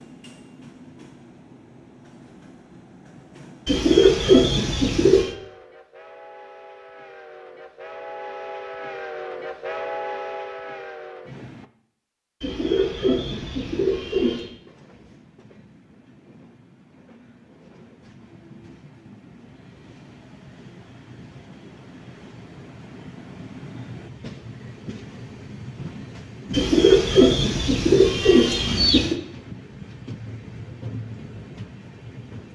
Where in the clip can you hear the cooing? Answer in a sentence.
The cooing can be heard from 3.6 to 5.3 s, from 12.4 to 14.5 s and from 26.5 to 29.2 s.